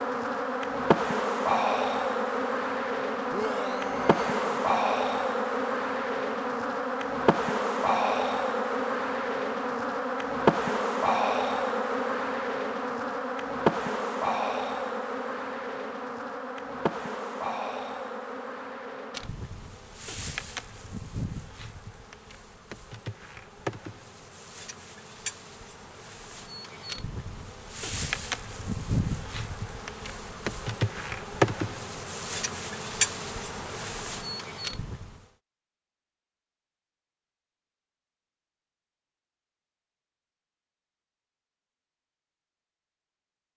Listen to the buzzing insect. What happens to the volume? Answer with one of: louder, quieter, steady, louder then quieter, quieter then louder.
quieter then louder.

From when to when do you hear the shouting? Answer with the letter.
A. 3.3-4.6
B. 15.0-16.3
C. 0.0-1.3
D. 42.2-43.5
A.